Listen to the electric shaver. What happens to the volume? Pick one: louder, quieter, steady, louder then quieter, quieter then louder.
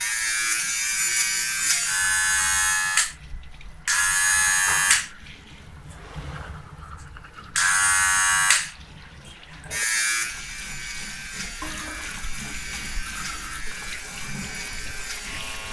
quieter.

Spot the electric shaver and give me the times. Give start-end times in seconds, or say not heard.
0.0-15.6.